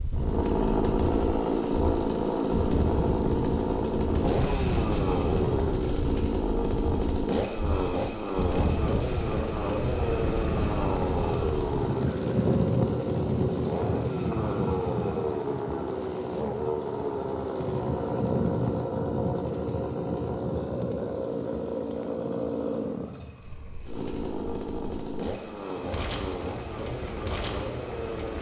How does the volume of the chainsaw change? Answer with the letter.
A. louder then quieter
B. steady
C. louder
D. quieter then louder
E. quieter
E.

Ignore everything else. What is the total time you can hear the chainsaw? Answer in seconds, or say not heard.
28 s.